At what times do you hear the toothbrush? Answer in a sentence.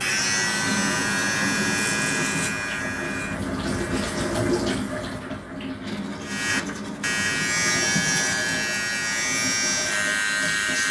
The toothbrush can be heard from 0.7 to 2.6 s and from 5.8 to 8.4 s.